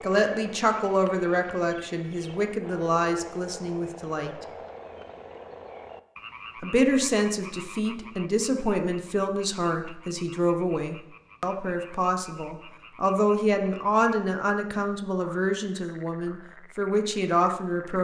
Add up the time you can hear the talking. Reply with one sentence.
The talking can be heard for 16 seconds in total.